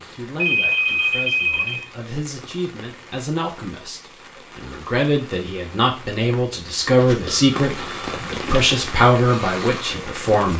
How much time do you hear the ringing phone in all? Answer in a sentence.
The ringing phone can be heard for 3 seconds in total.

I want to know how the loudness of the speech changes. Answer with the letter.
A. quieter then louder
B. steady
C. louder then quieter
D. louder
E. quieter
D.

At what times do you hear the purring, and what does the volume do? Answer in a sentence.
You can't hear the purring here.